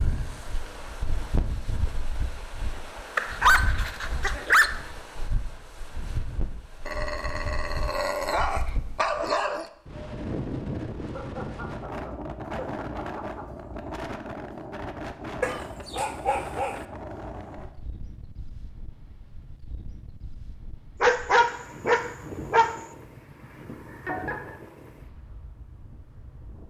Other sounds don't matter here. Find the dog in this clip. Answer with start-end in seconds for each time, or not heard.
3.1-4.7, 6.8-9.7, 15.4-16.8, 21.0-22.9.